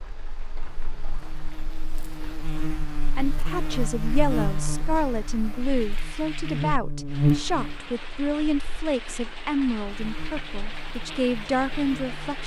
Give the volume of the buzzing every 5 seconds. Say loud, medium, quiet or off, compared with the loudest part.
medium, loud, quiet.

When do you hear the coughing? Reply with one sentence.
You can't hear the coughing here.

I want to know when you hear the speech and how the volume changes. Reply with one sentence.
The speech can be heard from 3.1 to 12.4 s, at a steady volume.